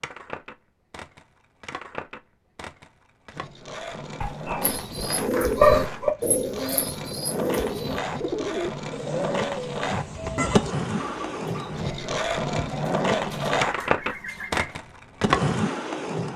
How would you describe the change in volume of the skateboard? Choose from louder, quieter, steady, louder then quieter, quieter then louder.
louder.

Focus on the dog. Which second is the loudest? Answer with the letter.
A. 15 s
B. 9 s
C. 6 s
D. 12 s
C.